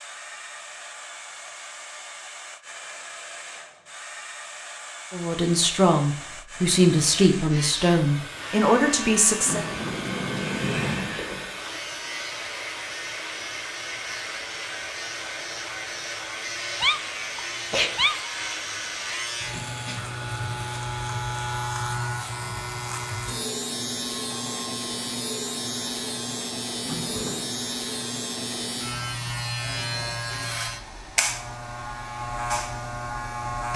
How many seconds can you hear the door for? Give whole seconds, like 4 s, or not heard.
3 s.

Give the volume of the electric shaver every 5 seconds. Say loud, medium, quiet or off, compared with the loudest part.
off, medium, medium, loud, loud, loud, loud.